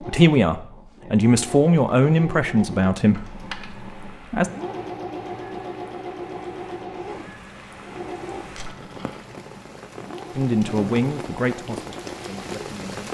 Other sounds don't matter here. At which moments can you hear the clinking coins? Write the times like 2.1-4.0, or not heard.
3.1-3.8, 8.4-9.2.